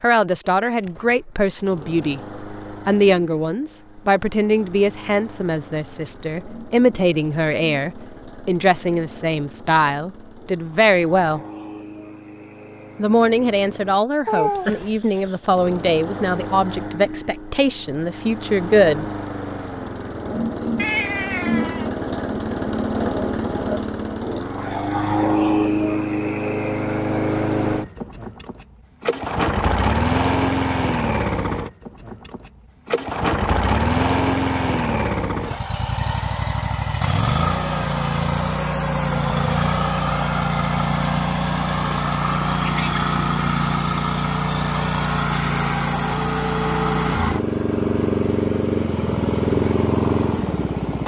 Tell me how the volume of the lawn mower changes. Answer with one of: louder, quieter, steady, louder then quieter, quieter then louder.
louder.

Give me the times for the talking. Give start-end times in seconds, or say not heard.
0.0-11.4, 12.9-19.1.